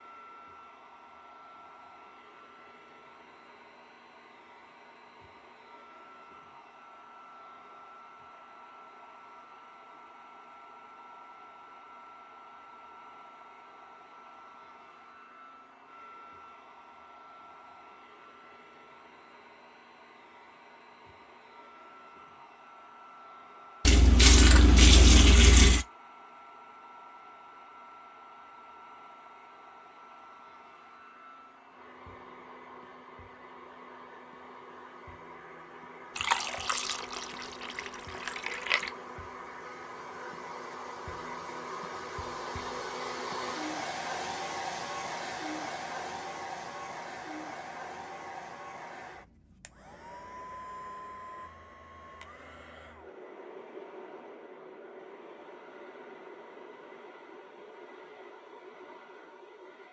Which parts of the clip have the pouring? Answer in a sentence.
You can hear the pouring from 23.9 to 25.9 s and from 36.1 to 38.9 s.